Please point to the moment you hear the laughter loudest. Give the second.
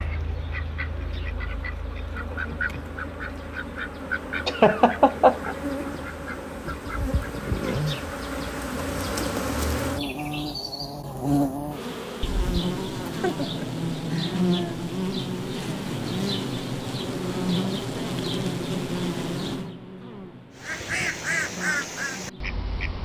5 s.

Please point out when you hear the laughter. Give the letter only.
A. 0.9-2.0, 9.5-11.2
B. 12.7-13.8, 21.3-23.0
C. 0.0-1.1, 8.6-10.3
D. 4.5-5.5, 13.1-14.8
D.